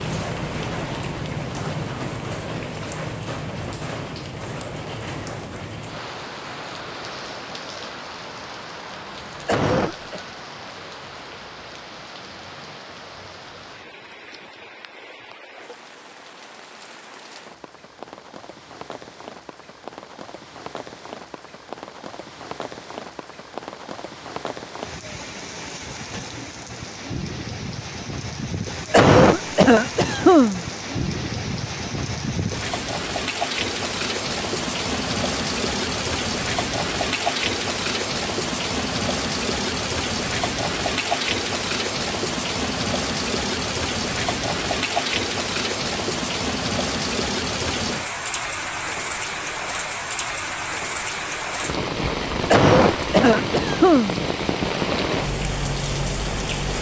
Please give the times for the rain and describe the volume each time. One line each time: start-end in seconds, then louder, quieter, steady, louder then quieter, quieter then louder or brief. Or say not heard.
0.0-56.7 quieter then louder.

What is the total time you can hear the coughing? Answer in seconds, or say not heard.
4 s.